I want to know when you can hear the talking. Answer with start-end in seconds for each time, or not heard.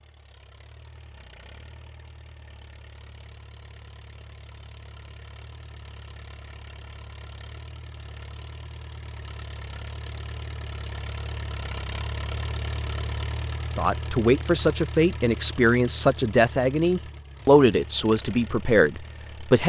13.8-19.6.